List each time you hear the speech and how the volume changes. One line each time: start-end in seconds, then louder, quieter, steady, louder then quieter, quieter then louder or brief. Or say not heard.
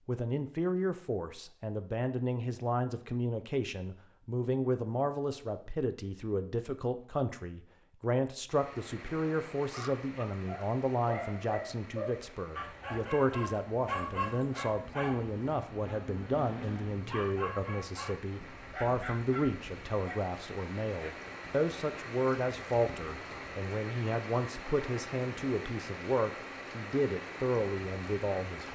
0.1-28.7 steady.